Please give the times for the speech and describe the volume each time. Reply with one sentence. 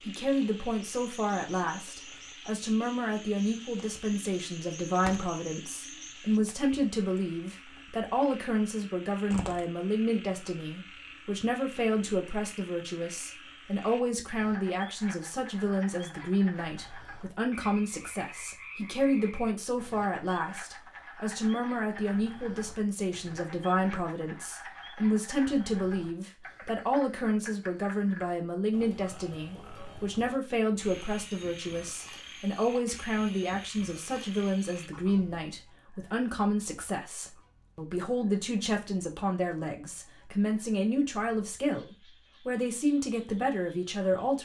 You can hear the speech from 0.1 to 44.4 s, at a steady volume.